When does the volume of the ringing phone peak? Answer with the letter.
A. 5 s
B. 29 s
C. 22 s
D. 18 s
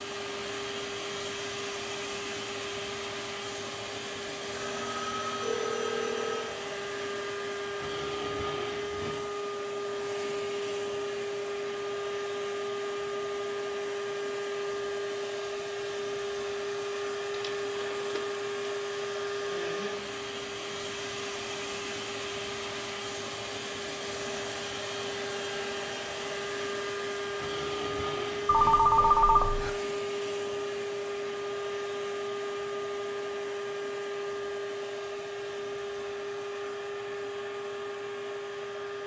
B.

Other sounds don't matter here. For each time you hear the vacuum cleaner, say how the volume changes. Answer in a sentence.
You can hear the vacuum cleaner from 0.0 to 39.0 s, at a steady volume.